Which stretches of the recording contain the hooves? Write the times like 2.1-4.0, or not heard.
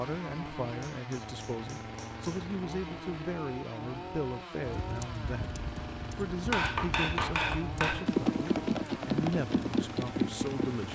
4.6-10.9.